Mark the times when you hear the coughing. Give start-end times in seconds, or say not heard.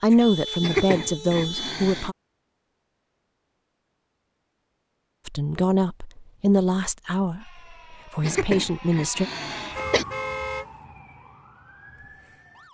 0.6-2.1, 8.2-10.1.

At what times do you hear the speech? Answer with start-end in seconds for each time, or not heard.
0.0-2.1, 5.2-9.2.